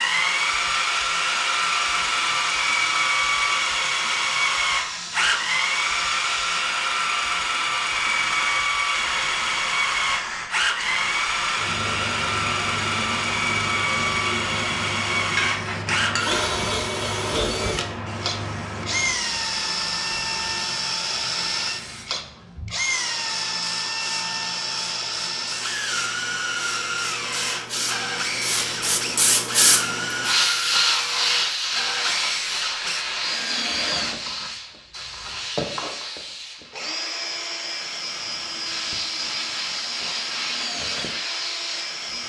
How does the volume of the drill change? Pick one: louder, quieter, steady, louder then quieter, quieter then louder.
quieter.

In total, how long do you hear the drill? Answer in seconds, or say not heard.
42 s.